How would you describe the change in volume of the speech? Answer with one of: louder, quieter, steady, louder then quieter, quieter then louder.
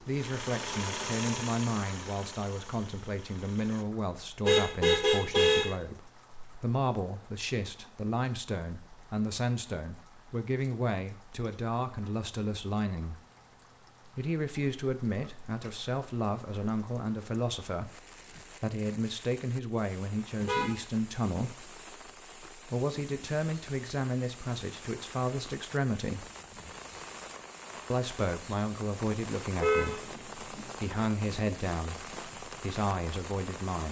steady.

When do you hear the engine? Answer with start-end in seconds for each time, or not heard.
0.0-3.9.